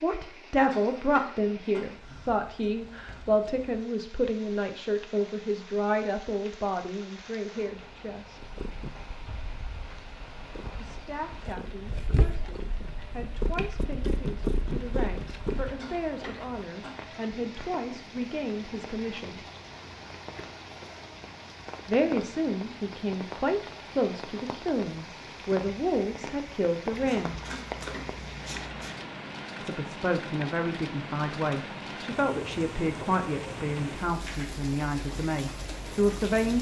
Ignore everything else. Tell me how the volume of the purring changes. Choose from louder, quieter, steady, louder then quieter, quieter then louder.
louder.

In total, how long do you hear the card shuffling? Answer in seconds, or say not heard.
2 s.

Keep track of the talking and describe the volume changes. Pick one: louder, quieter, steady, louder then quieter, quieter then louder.
quieter then louder.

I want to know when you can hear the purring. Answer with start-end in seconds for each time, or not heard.
8.4-15.8.